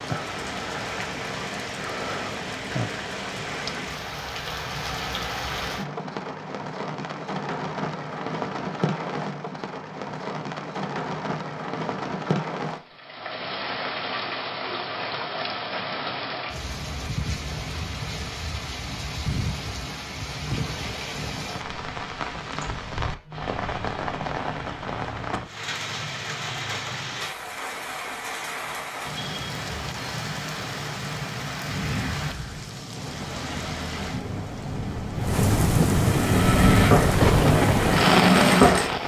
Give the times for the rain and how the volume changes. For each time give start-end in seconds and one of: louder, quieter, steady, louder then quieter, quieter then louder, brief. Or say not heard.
0.0-39.0 louder.